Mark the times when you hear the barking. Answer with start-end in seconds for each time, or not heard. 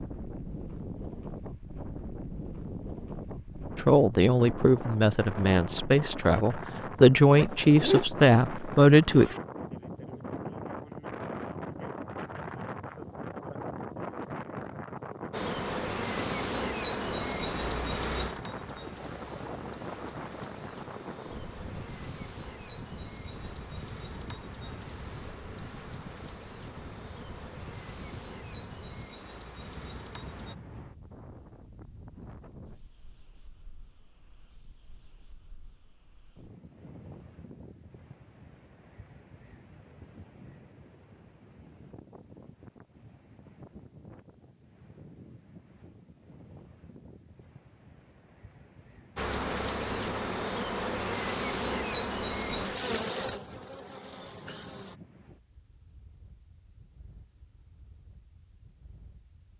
not heard.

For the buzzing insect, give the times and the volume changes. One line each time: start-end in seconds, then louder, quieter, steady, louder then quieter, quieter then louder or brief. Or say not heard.
15.3-30.6 quieter
49.1-55.0 quieter.